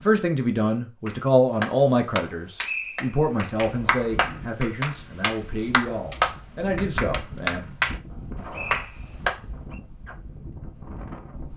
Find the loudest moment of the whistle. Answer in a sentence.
The volume of the whistle peaks at 3 seconds.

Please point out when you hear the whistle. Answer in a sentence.
The whistle can be heard from 2.6 to 3.4 s and from 8.1 to 9.8 s.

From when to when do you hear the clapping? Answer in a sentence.
The clapping can be heard from 1.1 to 8.0 s and from 8.7 to 9.3 s.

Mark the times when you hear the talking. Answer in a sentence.
You can hear the talking from 0.0 to 7.6 s.